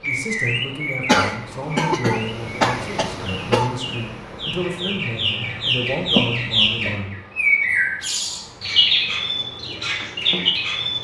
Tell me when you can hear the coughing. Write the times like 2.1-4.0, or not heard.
1.1-3.7, 6.2-7.0.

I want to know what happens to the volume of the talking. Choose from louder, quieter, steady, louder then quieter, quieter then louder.
steady.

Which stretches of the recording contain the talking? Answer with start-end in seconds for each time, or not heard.
0.0-7.2.